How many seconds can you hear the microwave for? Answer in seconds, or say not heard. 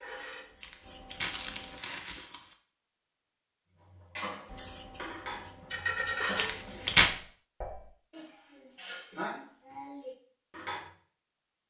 not heard.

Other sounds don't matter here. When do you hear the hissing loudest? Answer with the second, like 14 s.
6 s.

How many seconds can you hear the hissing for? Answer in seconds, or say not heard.
4 s.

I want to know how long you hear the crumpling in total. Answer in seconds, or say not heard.
3 s.